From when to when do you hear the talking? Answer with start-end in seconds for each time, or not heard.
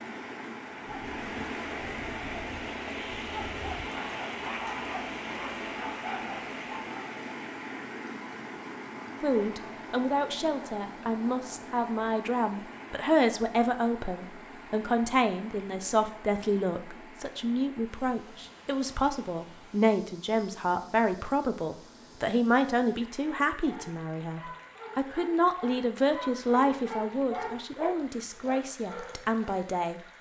9.2-30.0.